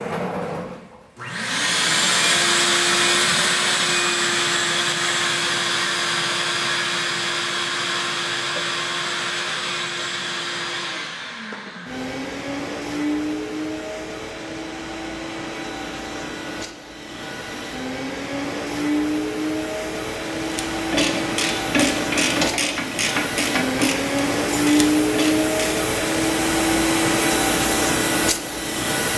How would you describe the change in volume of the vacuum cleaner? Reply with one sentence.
The volume of the vacuum cleaner goes down, then up.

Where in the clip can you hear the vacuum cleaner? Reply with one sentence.
The vacuum cleaner can be heard from 0.0 to 29.1 s.